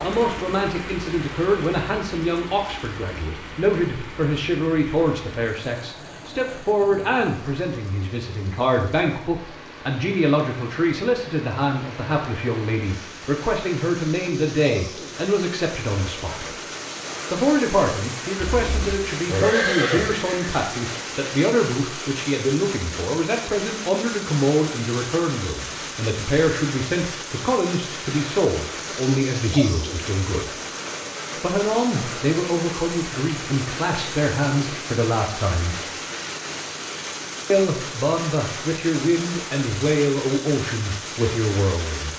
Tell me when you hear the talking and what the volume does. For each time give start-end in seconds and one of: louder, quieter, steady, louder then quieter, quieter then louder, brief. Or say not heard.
0.0-16.6 steady
17.3-30.6 steady
31.4-35.9 steady
37.5-42.1 steady.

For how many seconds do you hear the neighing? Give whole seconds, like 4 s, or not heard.
2 s.